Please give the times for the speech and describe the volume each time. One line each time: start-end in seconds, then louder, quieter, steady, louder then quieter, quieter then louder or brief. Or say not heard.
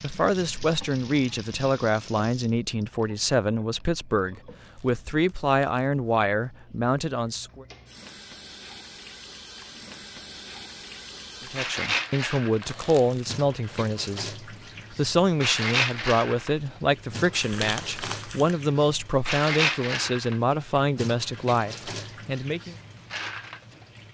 0.0-7.7 steady
11.5-22.8 steady.